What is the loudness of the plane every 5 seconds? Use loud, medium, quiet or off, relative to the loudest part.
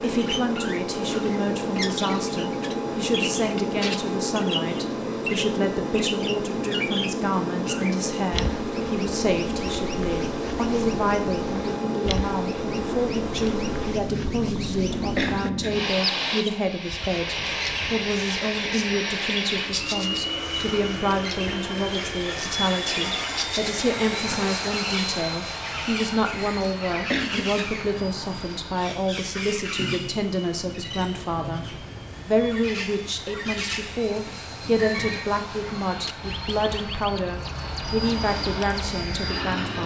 loud, loud, loud, loud, loud, medium, quiet, medium.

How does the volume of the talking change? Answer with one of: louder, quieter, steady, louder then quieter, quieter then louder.
steady.